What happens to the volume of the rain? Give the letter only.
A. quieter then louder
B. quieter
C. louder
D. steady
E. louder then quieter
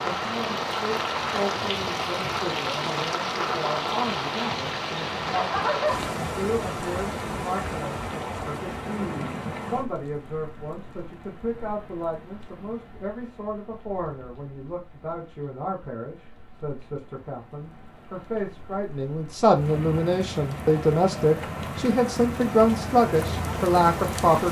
A.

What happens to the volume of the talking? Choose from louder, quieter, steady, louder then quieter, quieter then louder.
louder.